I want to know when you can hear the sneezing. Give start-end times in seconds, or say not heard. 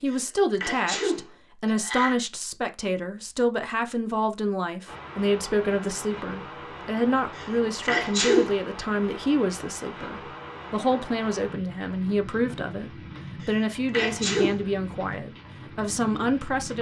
0.1-2.1, 7.3-8.6, 13.4-14.6.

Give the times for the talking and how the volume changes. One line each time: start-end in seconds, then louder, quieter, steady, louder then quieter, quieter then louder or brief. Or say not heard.
0.0-16.7 steady.